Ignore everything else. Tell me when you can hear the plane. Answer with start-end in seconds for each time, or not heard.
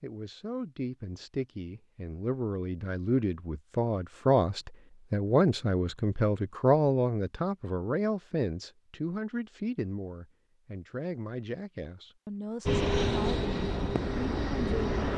12.7-15.1.